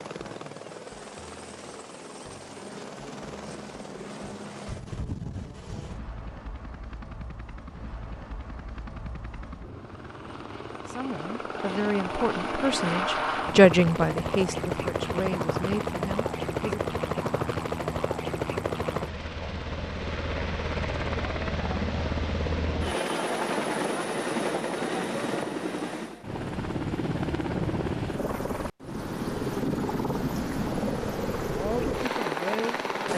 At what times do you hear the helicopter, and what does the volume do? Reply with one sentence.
You can hear the helicopter from 0.0 to 33.1 s, getting louder.